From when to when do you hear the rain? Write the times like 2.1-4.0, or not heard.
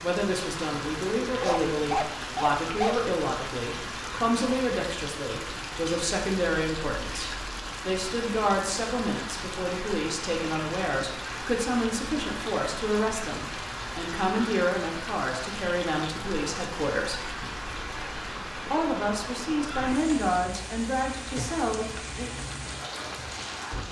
0.0-23.8.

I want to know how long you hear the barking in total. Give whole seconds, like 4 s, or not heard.
2 s.